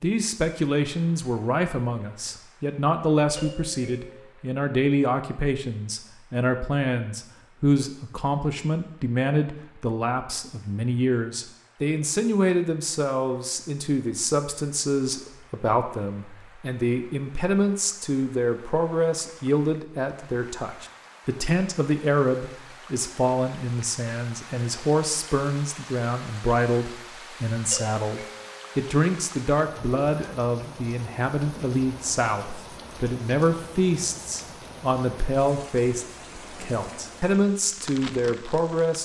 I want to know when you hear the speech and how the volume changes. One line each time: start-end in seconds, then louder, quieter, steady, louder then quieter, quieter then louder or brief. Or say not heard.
0.0-39.0 steady.